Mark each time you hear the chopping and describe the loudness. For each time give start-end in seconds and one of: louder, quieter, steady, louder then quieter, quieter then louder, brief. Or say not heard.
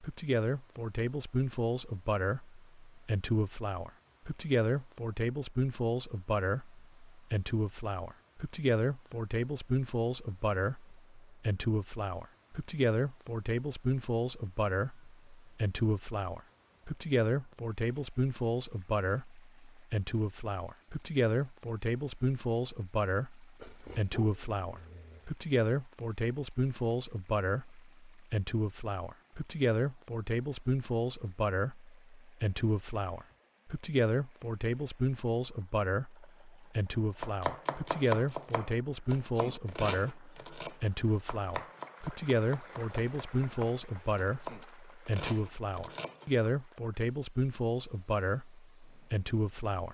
37.2-46.2 quieter then louder.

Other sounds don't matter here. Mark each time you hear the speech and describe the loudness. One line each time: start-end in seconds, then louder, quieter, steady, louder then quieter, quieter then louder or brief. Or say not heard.
0.0-49.9 steady.